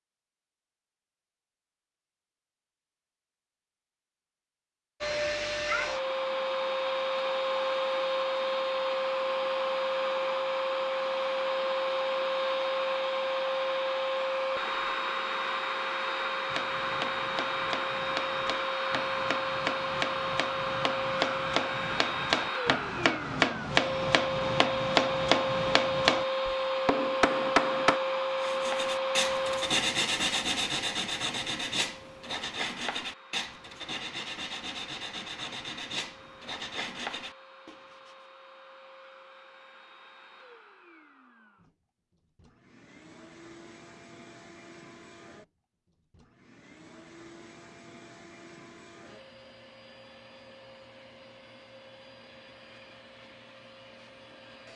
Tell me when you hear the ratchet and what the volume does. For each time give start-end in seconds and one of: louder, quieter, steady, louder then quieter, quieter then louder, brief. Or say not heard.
not heard.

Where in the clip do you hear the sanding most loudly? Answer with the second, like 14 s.
30 s.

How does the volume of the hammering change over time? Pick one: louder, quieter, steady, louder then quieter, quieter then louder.
louder.